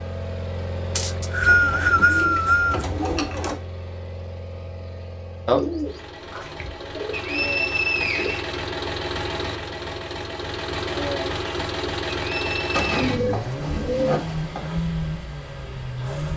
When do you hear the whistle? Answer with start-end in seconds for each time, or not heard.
0.9-2.9, 7.1-8.5, 12.3-13.2.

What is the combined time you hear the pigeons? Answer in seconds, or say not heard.
7 s.